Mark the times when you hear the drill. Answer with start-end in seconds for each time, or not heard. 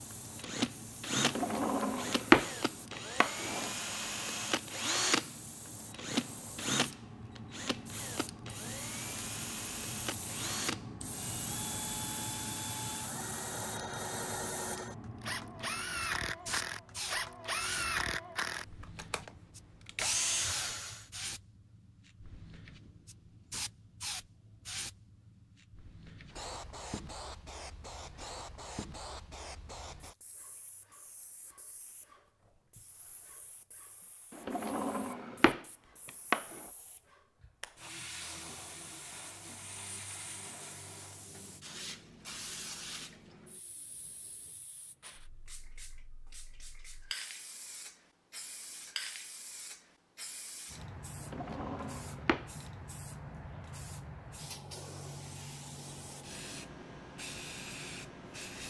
0.0-21.1.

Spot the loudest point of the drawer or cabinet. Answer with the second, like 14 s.
2 s.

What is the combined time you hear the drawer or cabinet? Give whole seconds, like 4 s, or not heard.
6 s.